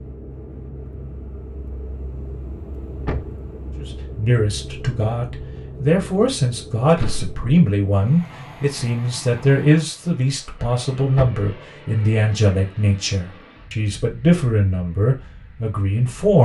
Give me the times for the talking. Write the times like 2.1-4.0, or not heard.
3.8-16.4.